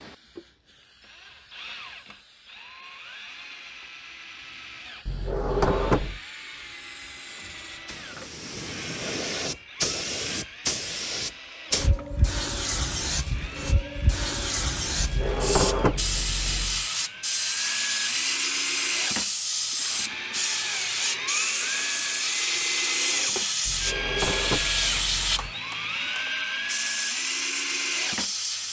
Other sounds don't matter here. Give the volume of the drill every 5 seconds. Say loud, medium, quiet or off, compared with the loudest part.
quiet, quiet, quiet, loud, loud, loud.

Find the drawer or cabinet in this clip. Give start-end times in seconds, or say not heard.
5.0-6.2, 14.9-16.9, 23.6-25.6.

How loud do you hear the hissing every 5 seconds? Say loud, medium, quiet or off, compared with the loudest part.
quiet, medium, loud, loud, loud, loud.